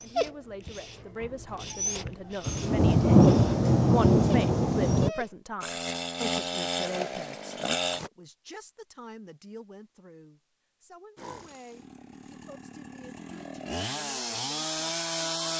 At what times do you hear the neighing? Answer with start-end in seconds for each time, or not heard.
not heard.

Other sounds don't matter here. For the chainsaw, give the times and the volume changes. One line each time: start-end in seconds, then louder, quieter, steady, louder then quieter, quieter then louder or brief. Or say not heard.
5.6-8.1 brief
11.2-15.5 louder.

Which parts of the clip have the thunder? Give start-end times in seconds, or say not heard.
2.5-5.1.